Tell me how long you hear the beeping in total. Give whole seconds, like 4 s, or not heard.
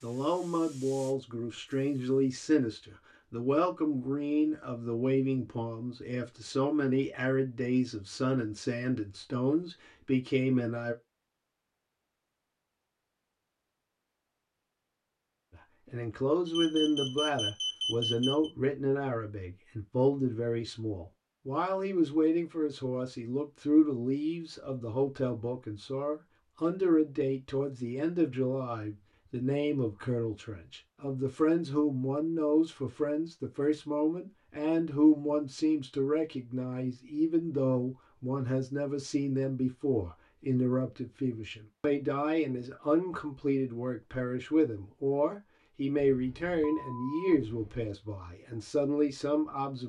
4 s.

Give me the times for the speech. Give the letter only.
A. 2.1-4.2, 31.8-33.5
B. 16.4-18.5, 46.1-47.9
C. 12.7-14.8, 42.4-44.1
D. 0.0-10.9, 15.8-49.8
D.